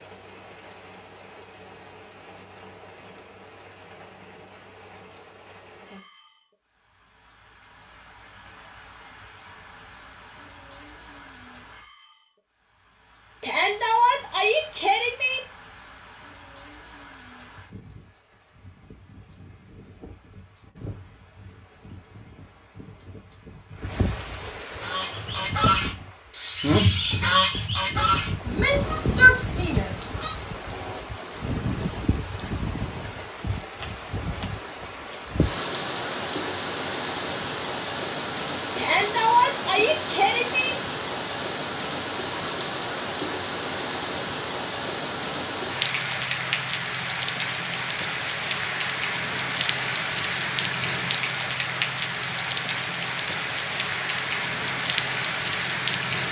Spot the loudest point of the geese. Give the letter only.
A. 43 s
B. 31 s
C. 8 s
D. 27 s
D.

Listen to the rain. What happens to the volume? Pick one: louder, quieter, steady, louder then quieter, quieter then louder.
louder.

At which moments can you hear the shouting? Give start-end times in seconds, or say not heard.
13.4-15.4, 28.4-30.1, 38.8-40.8.